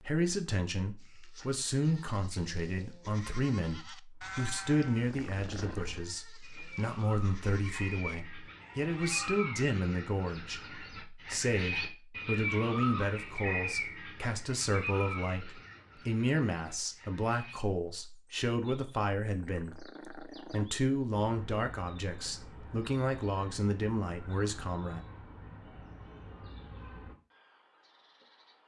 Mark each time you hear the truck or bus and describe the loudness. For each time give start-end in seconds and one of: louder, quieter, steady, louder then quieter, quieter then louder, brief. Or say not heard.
not heard.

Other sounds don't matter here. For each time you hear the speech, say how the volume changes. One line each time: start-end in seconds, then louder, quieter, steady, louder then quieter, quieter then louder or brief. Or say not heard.
0.0-25.0 steady.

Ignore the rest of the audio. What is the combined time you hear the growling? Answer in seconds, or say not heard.
2 s.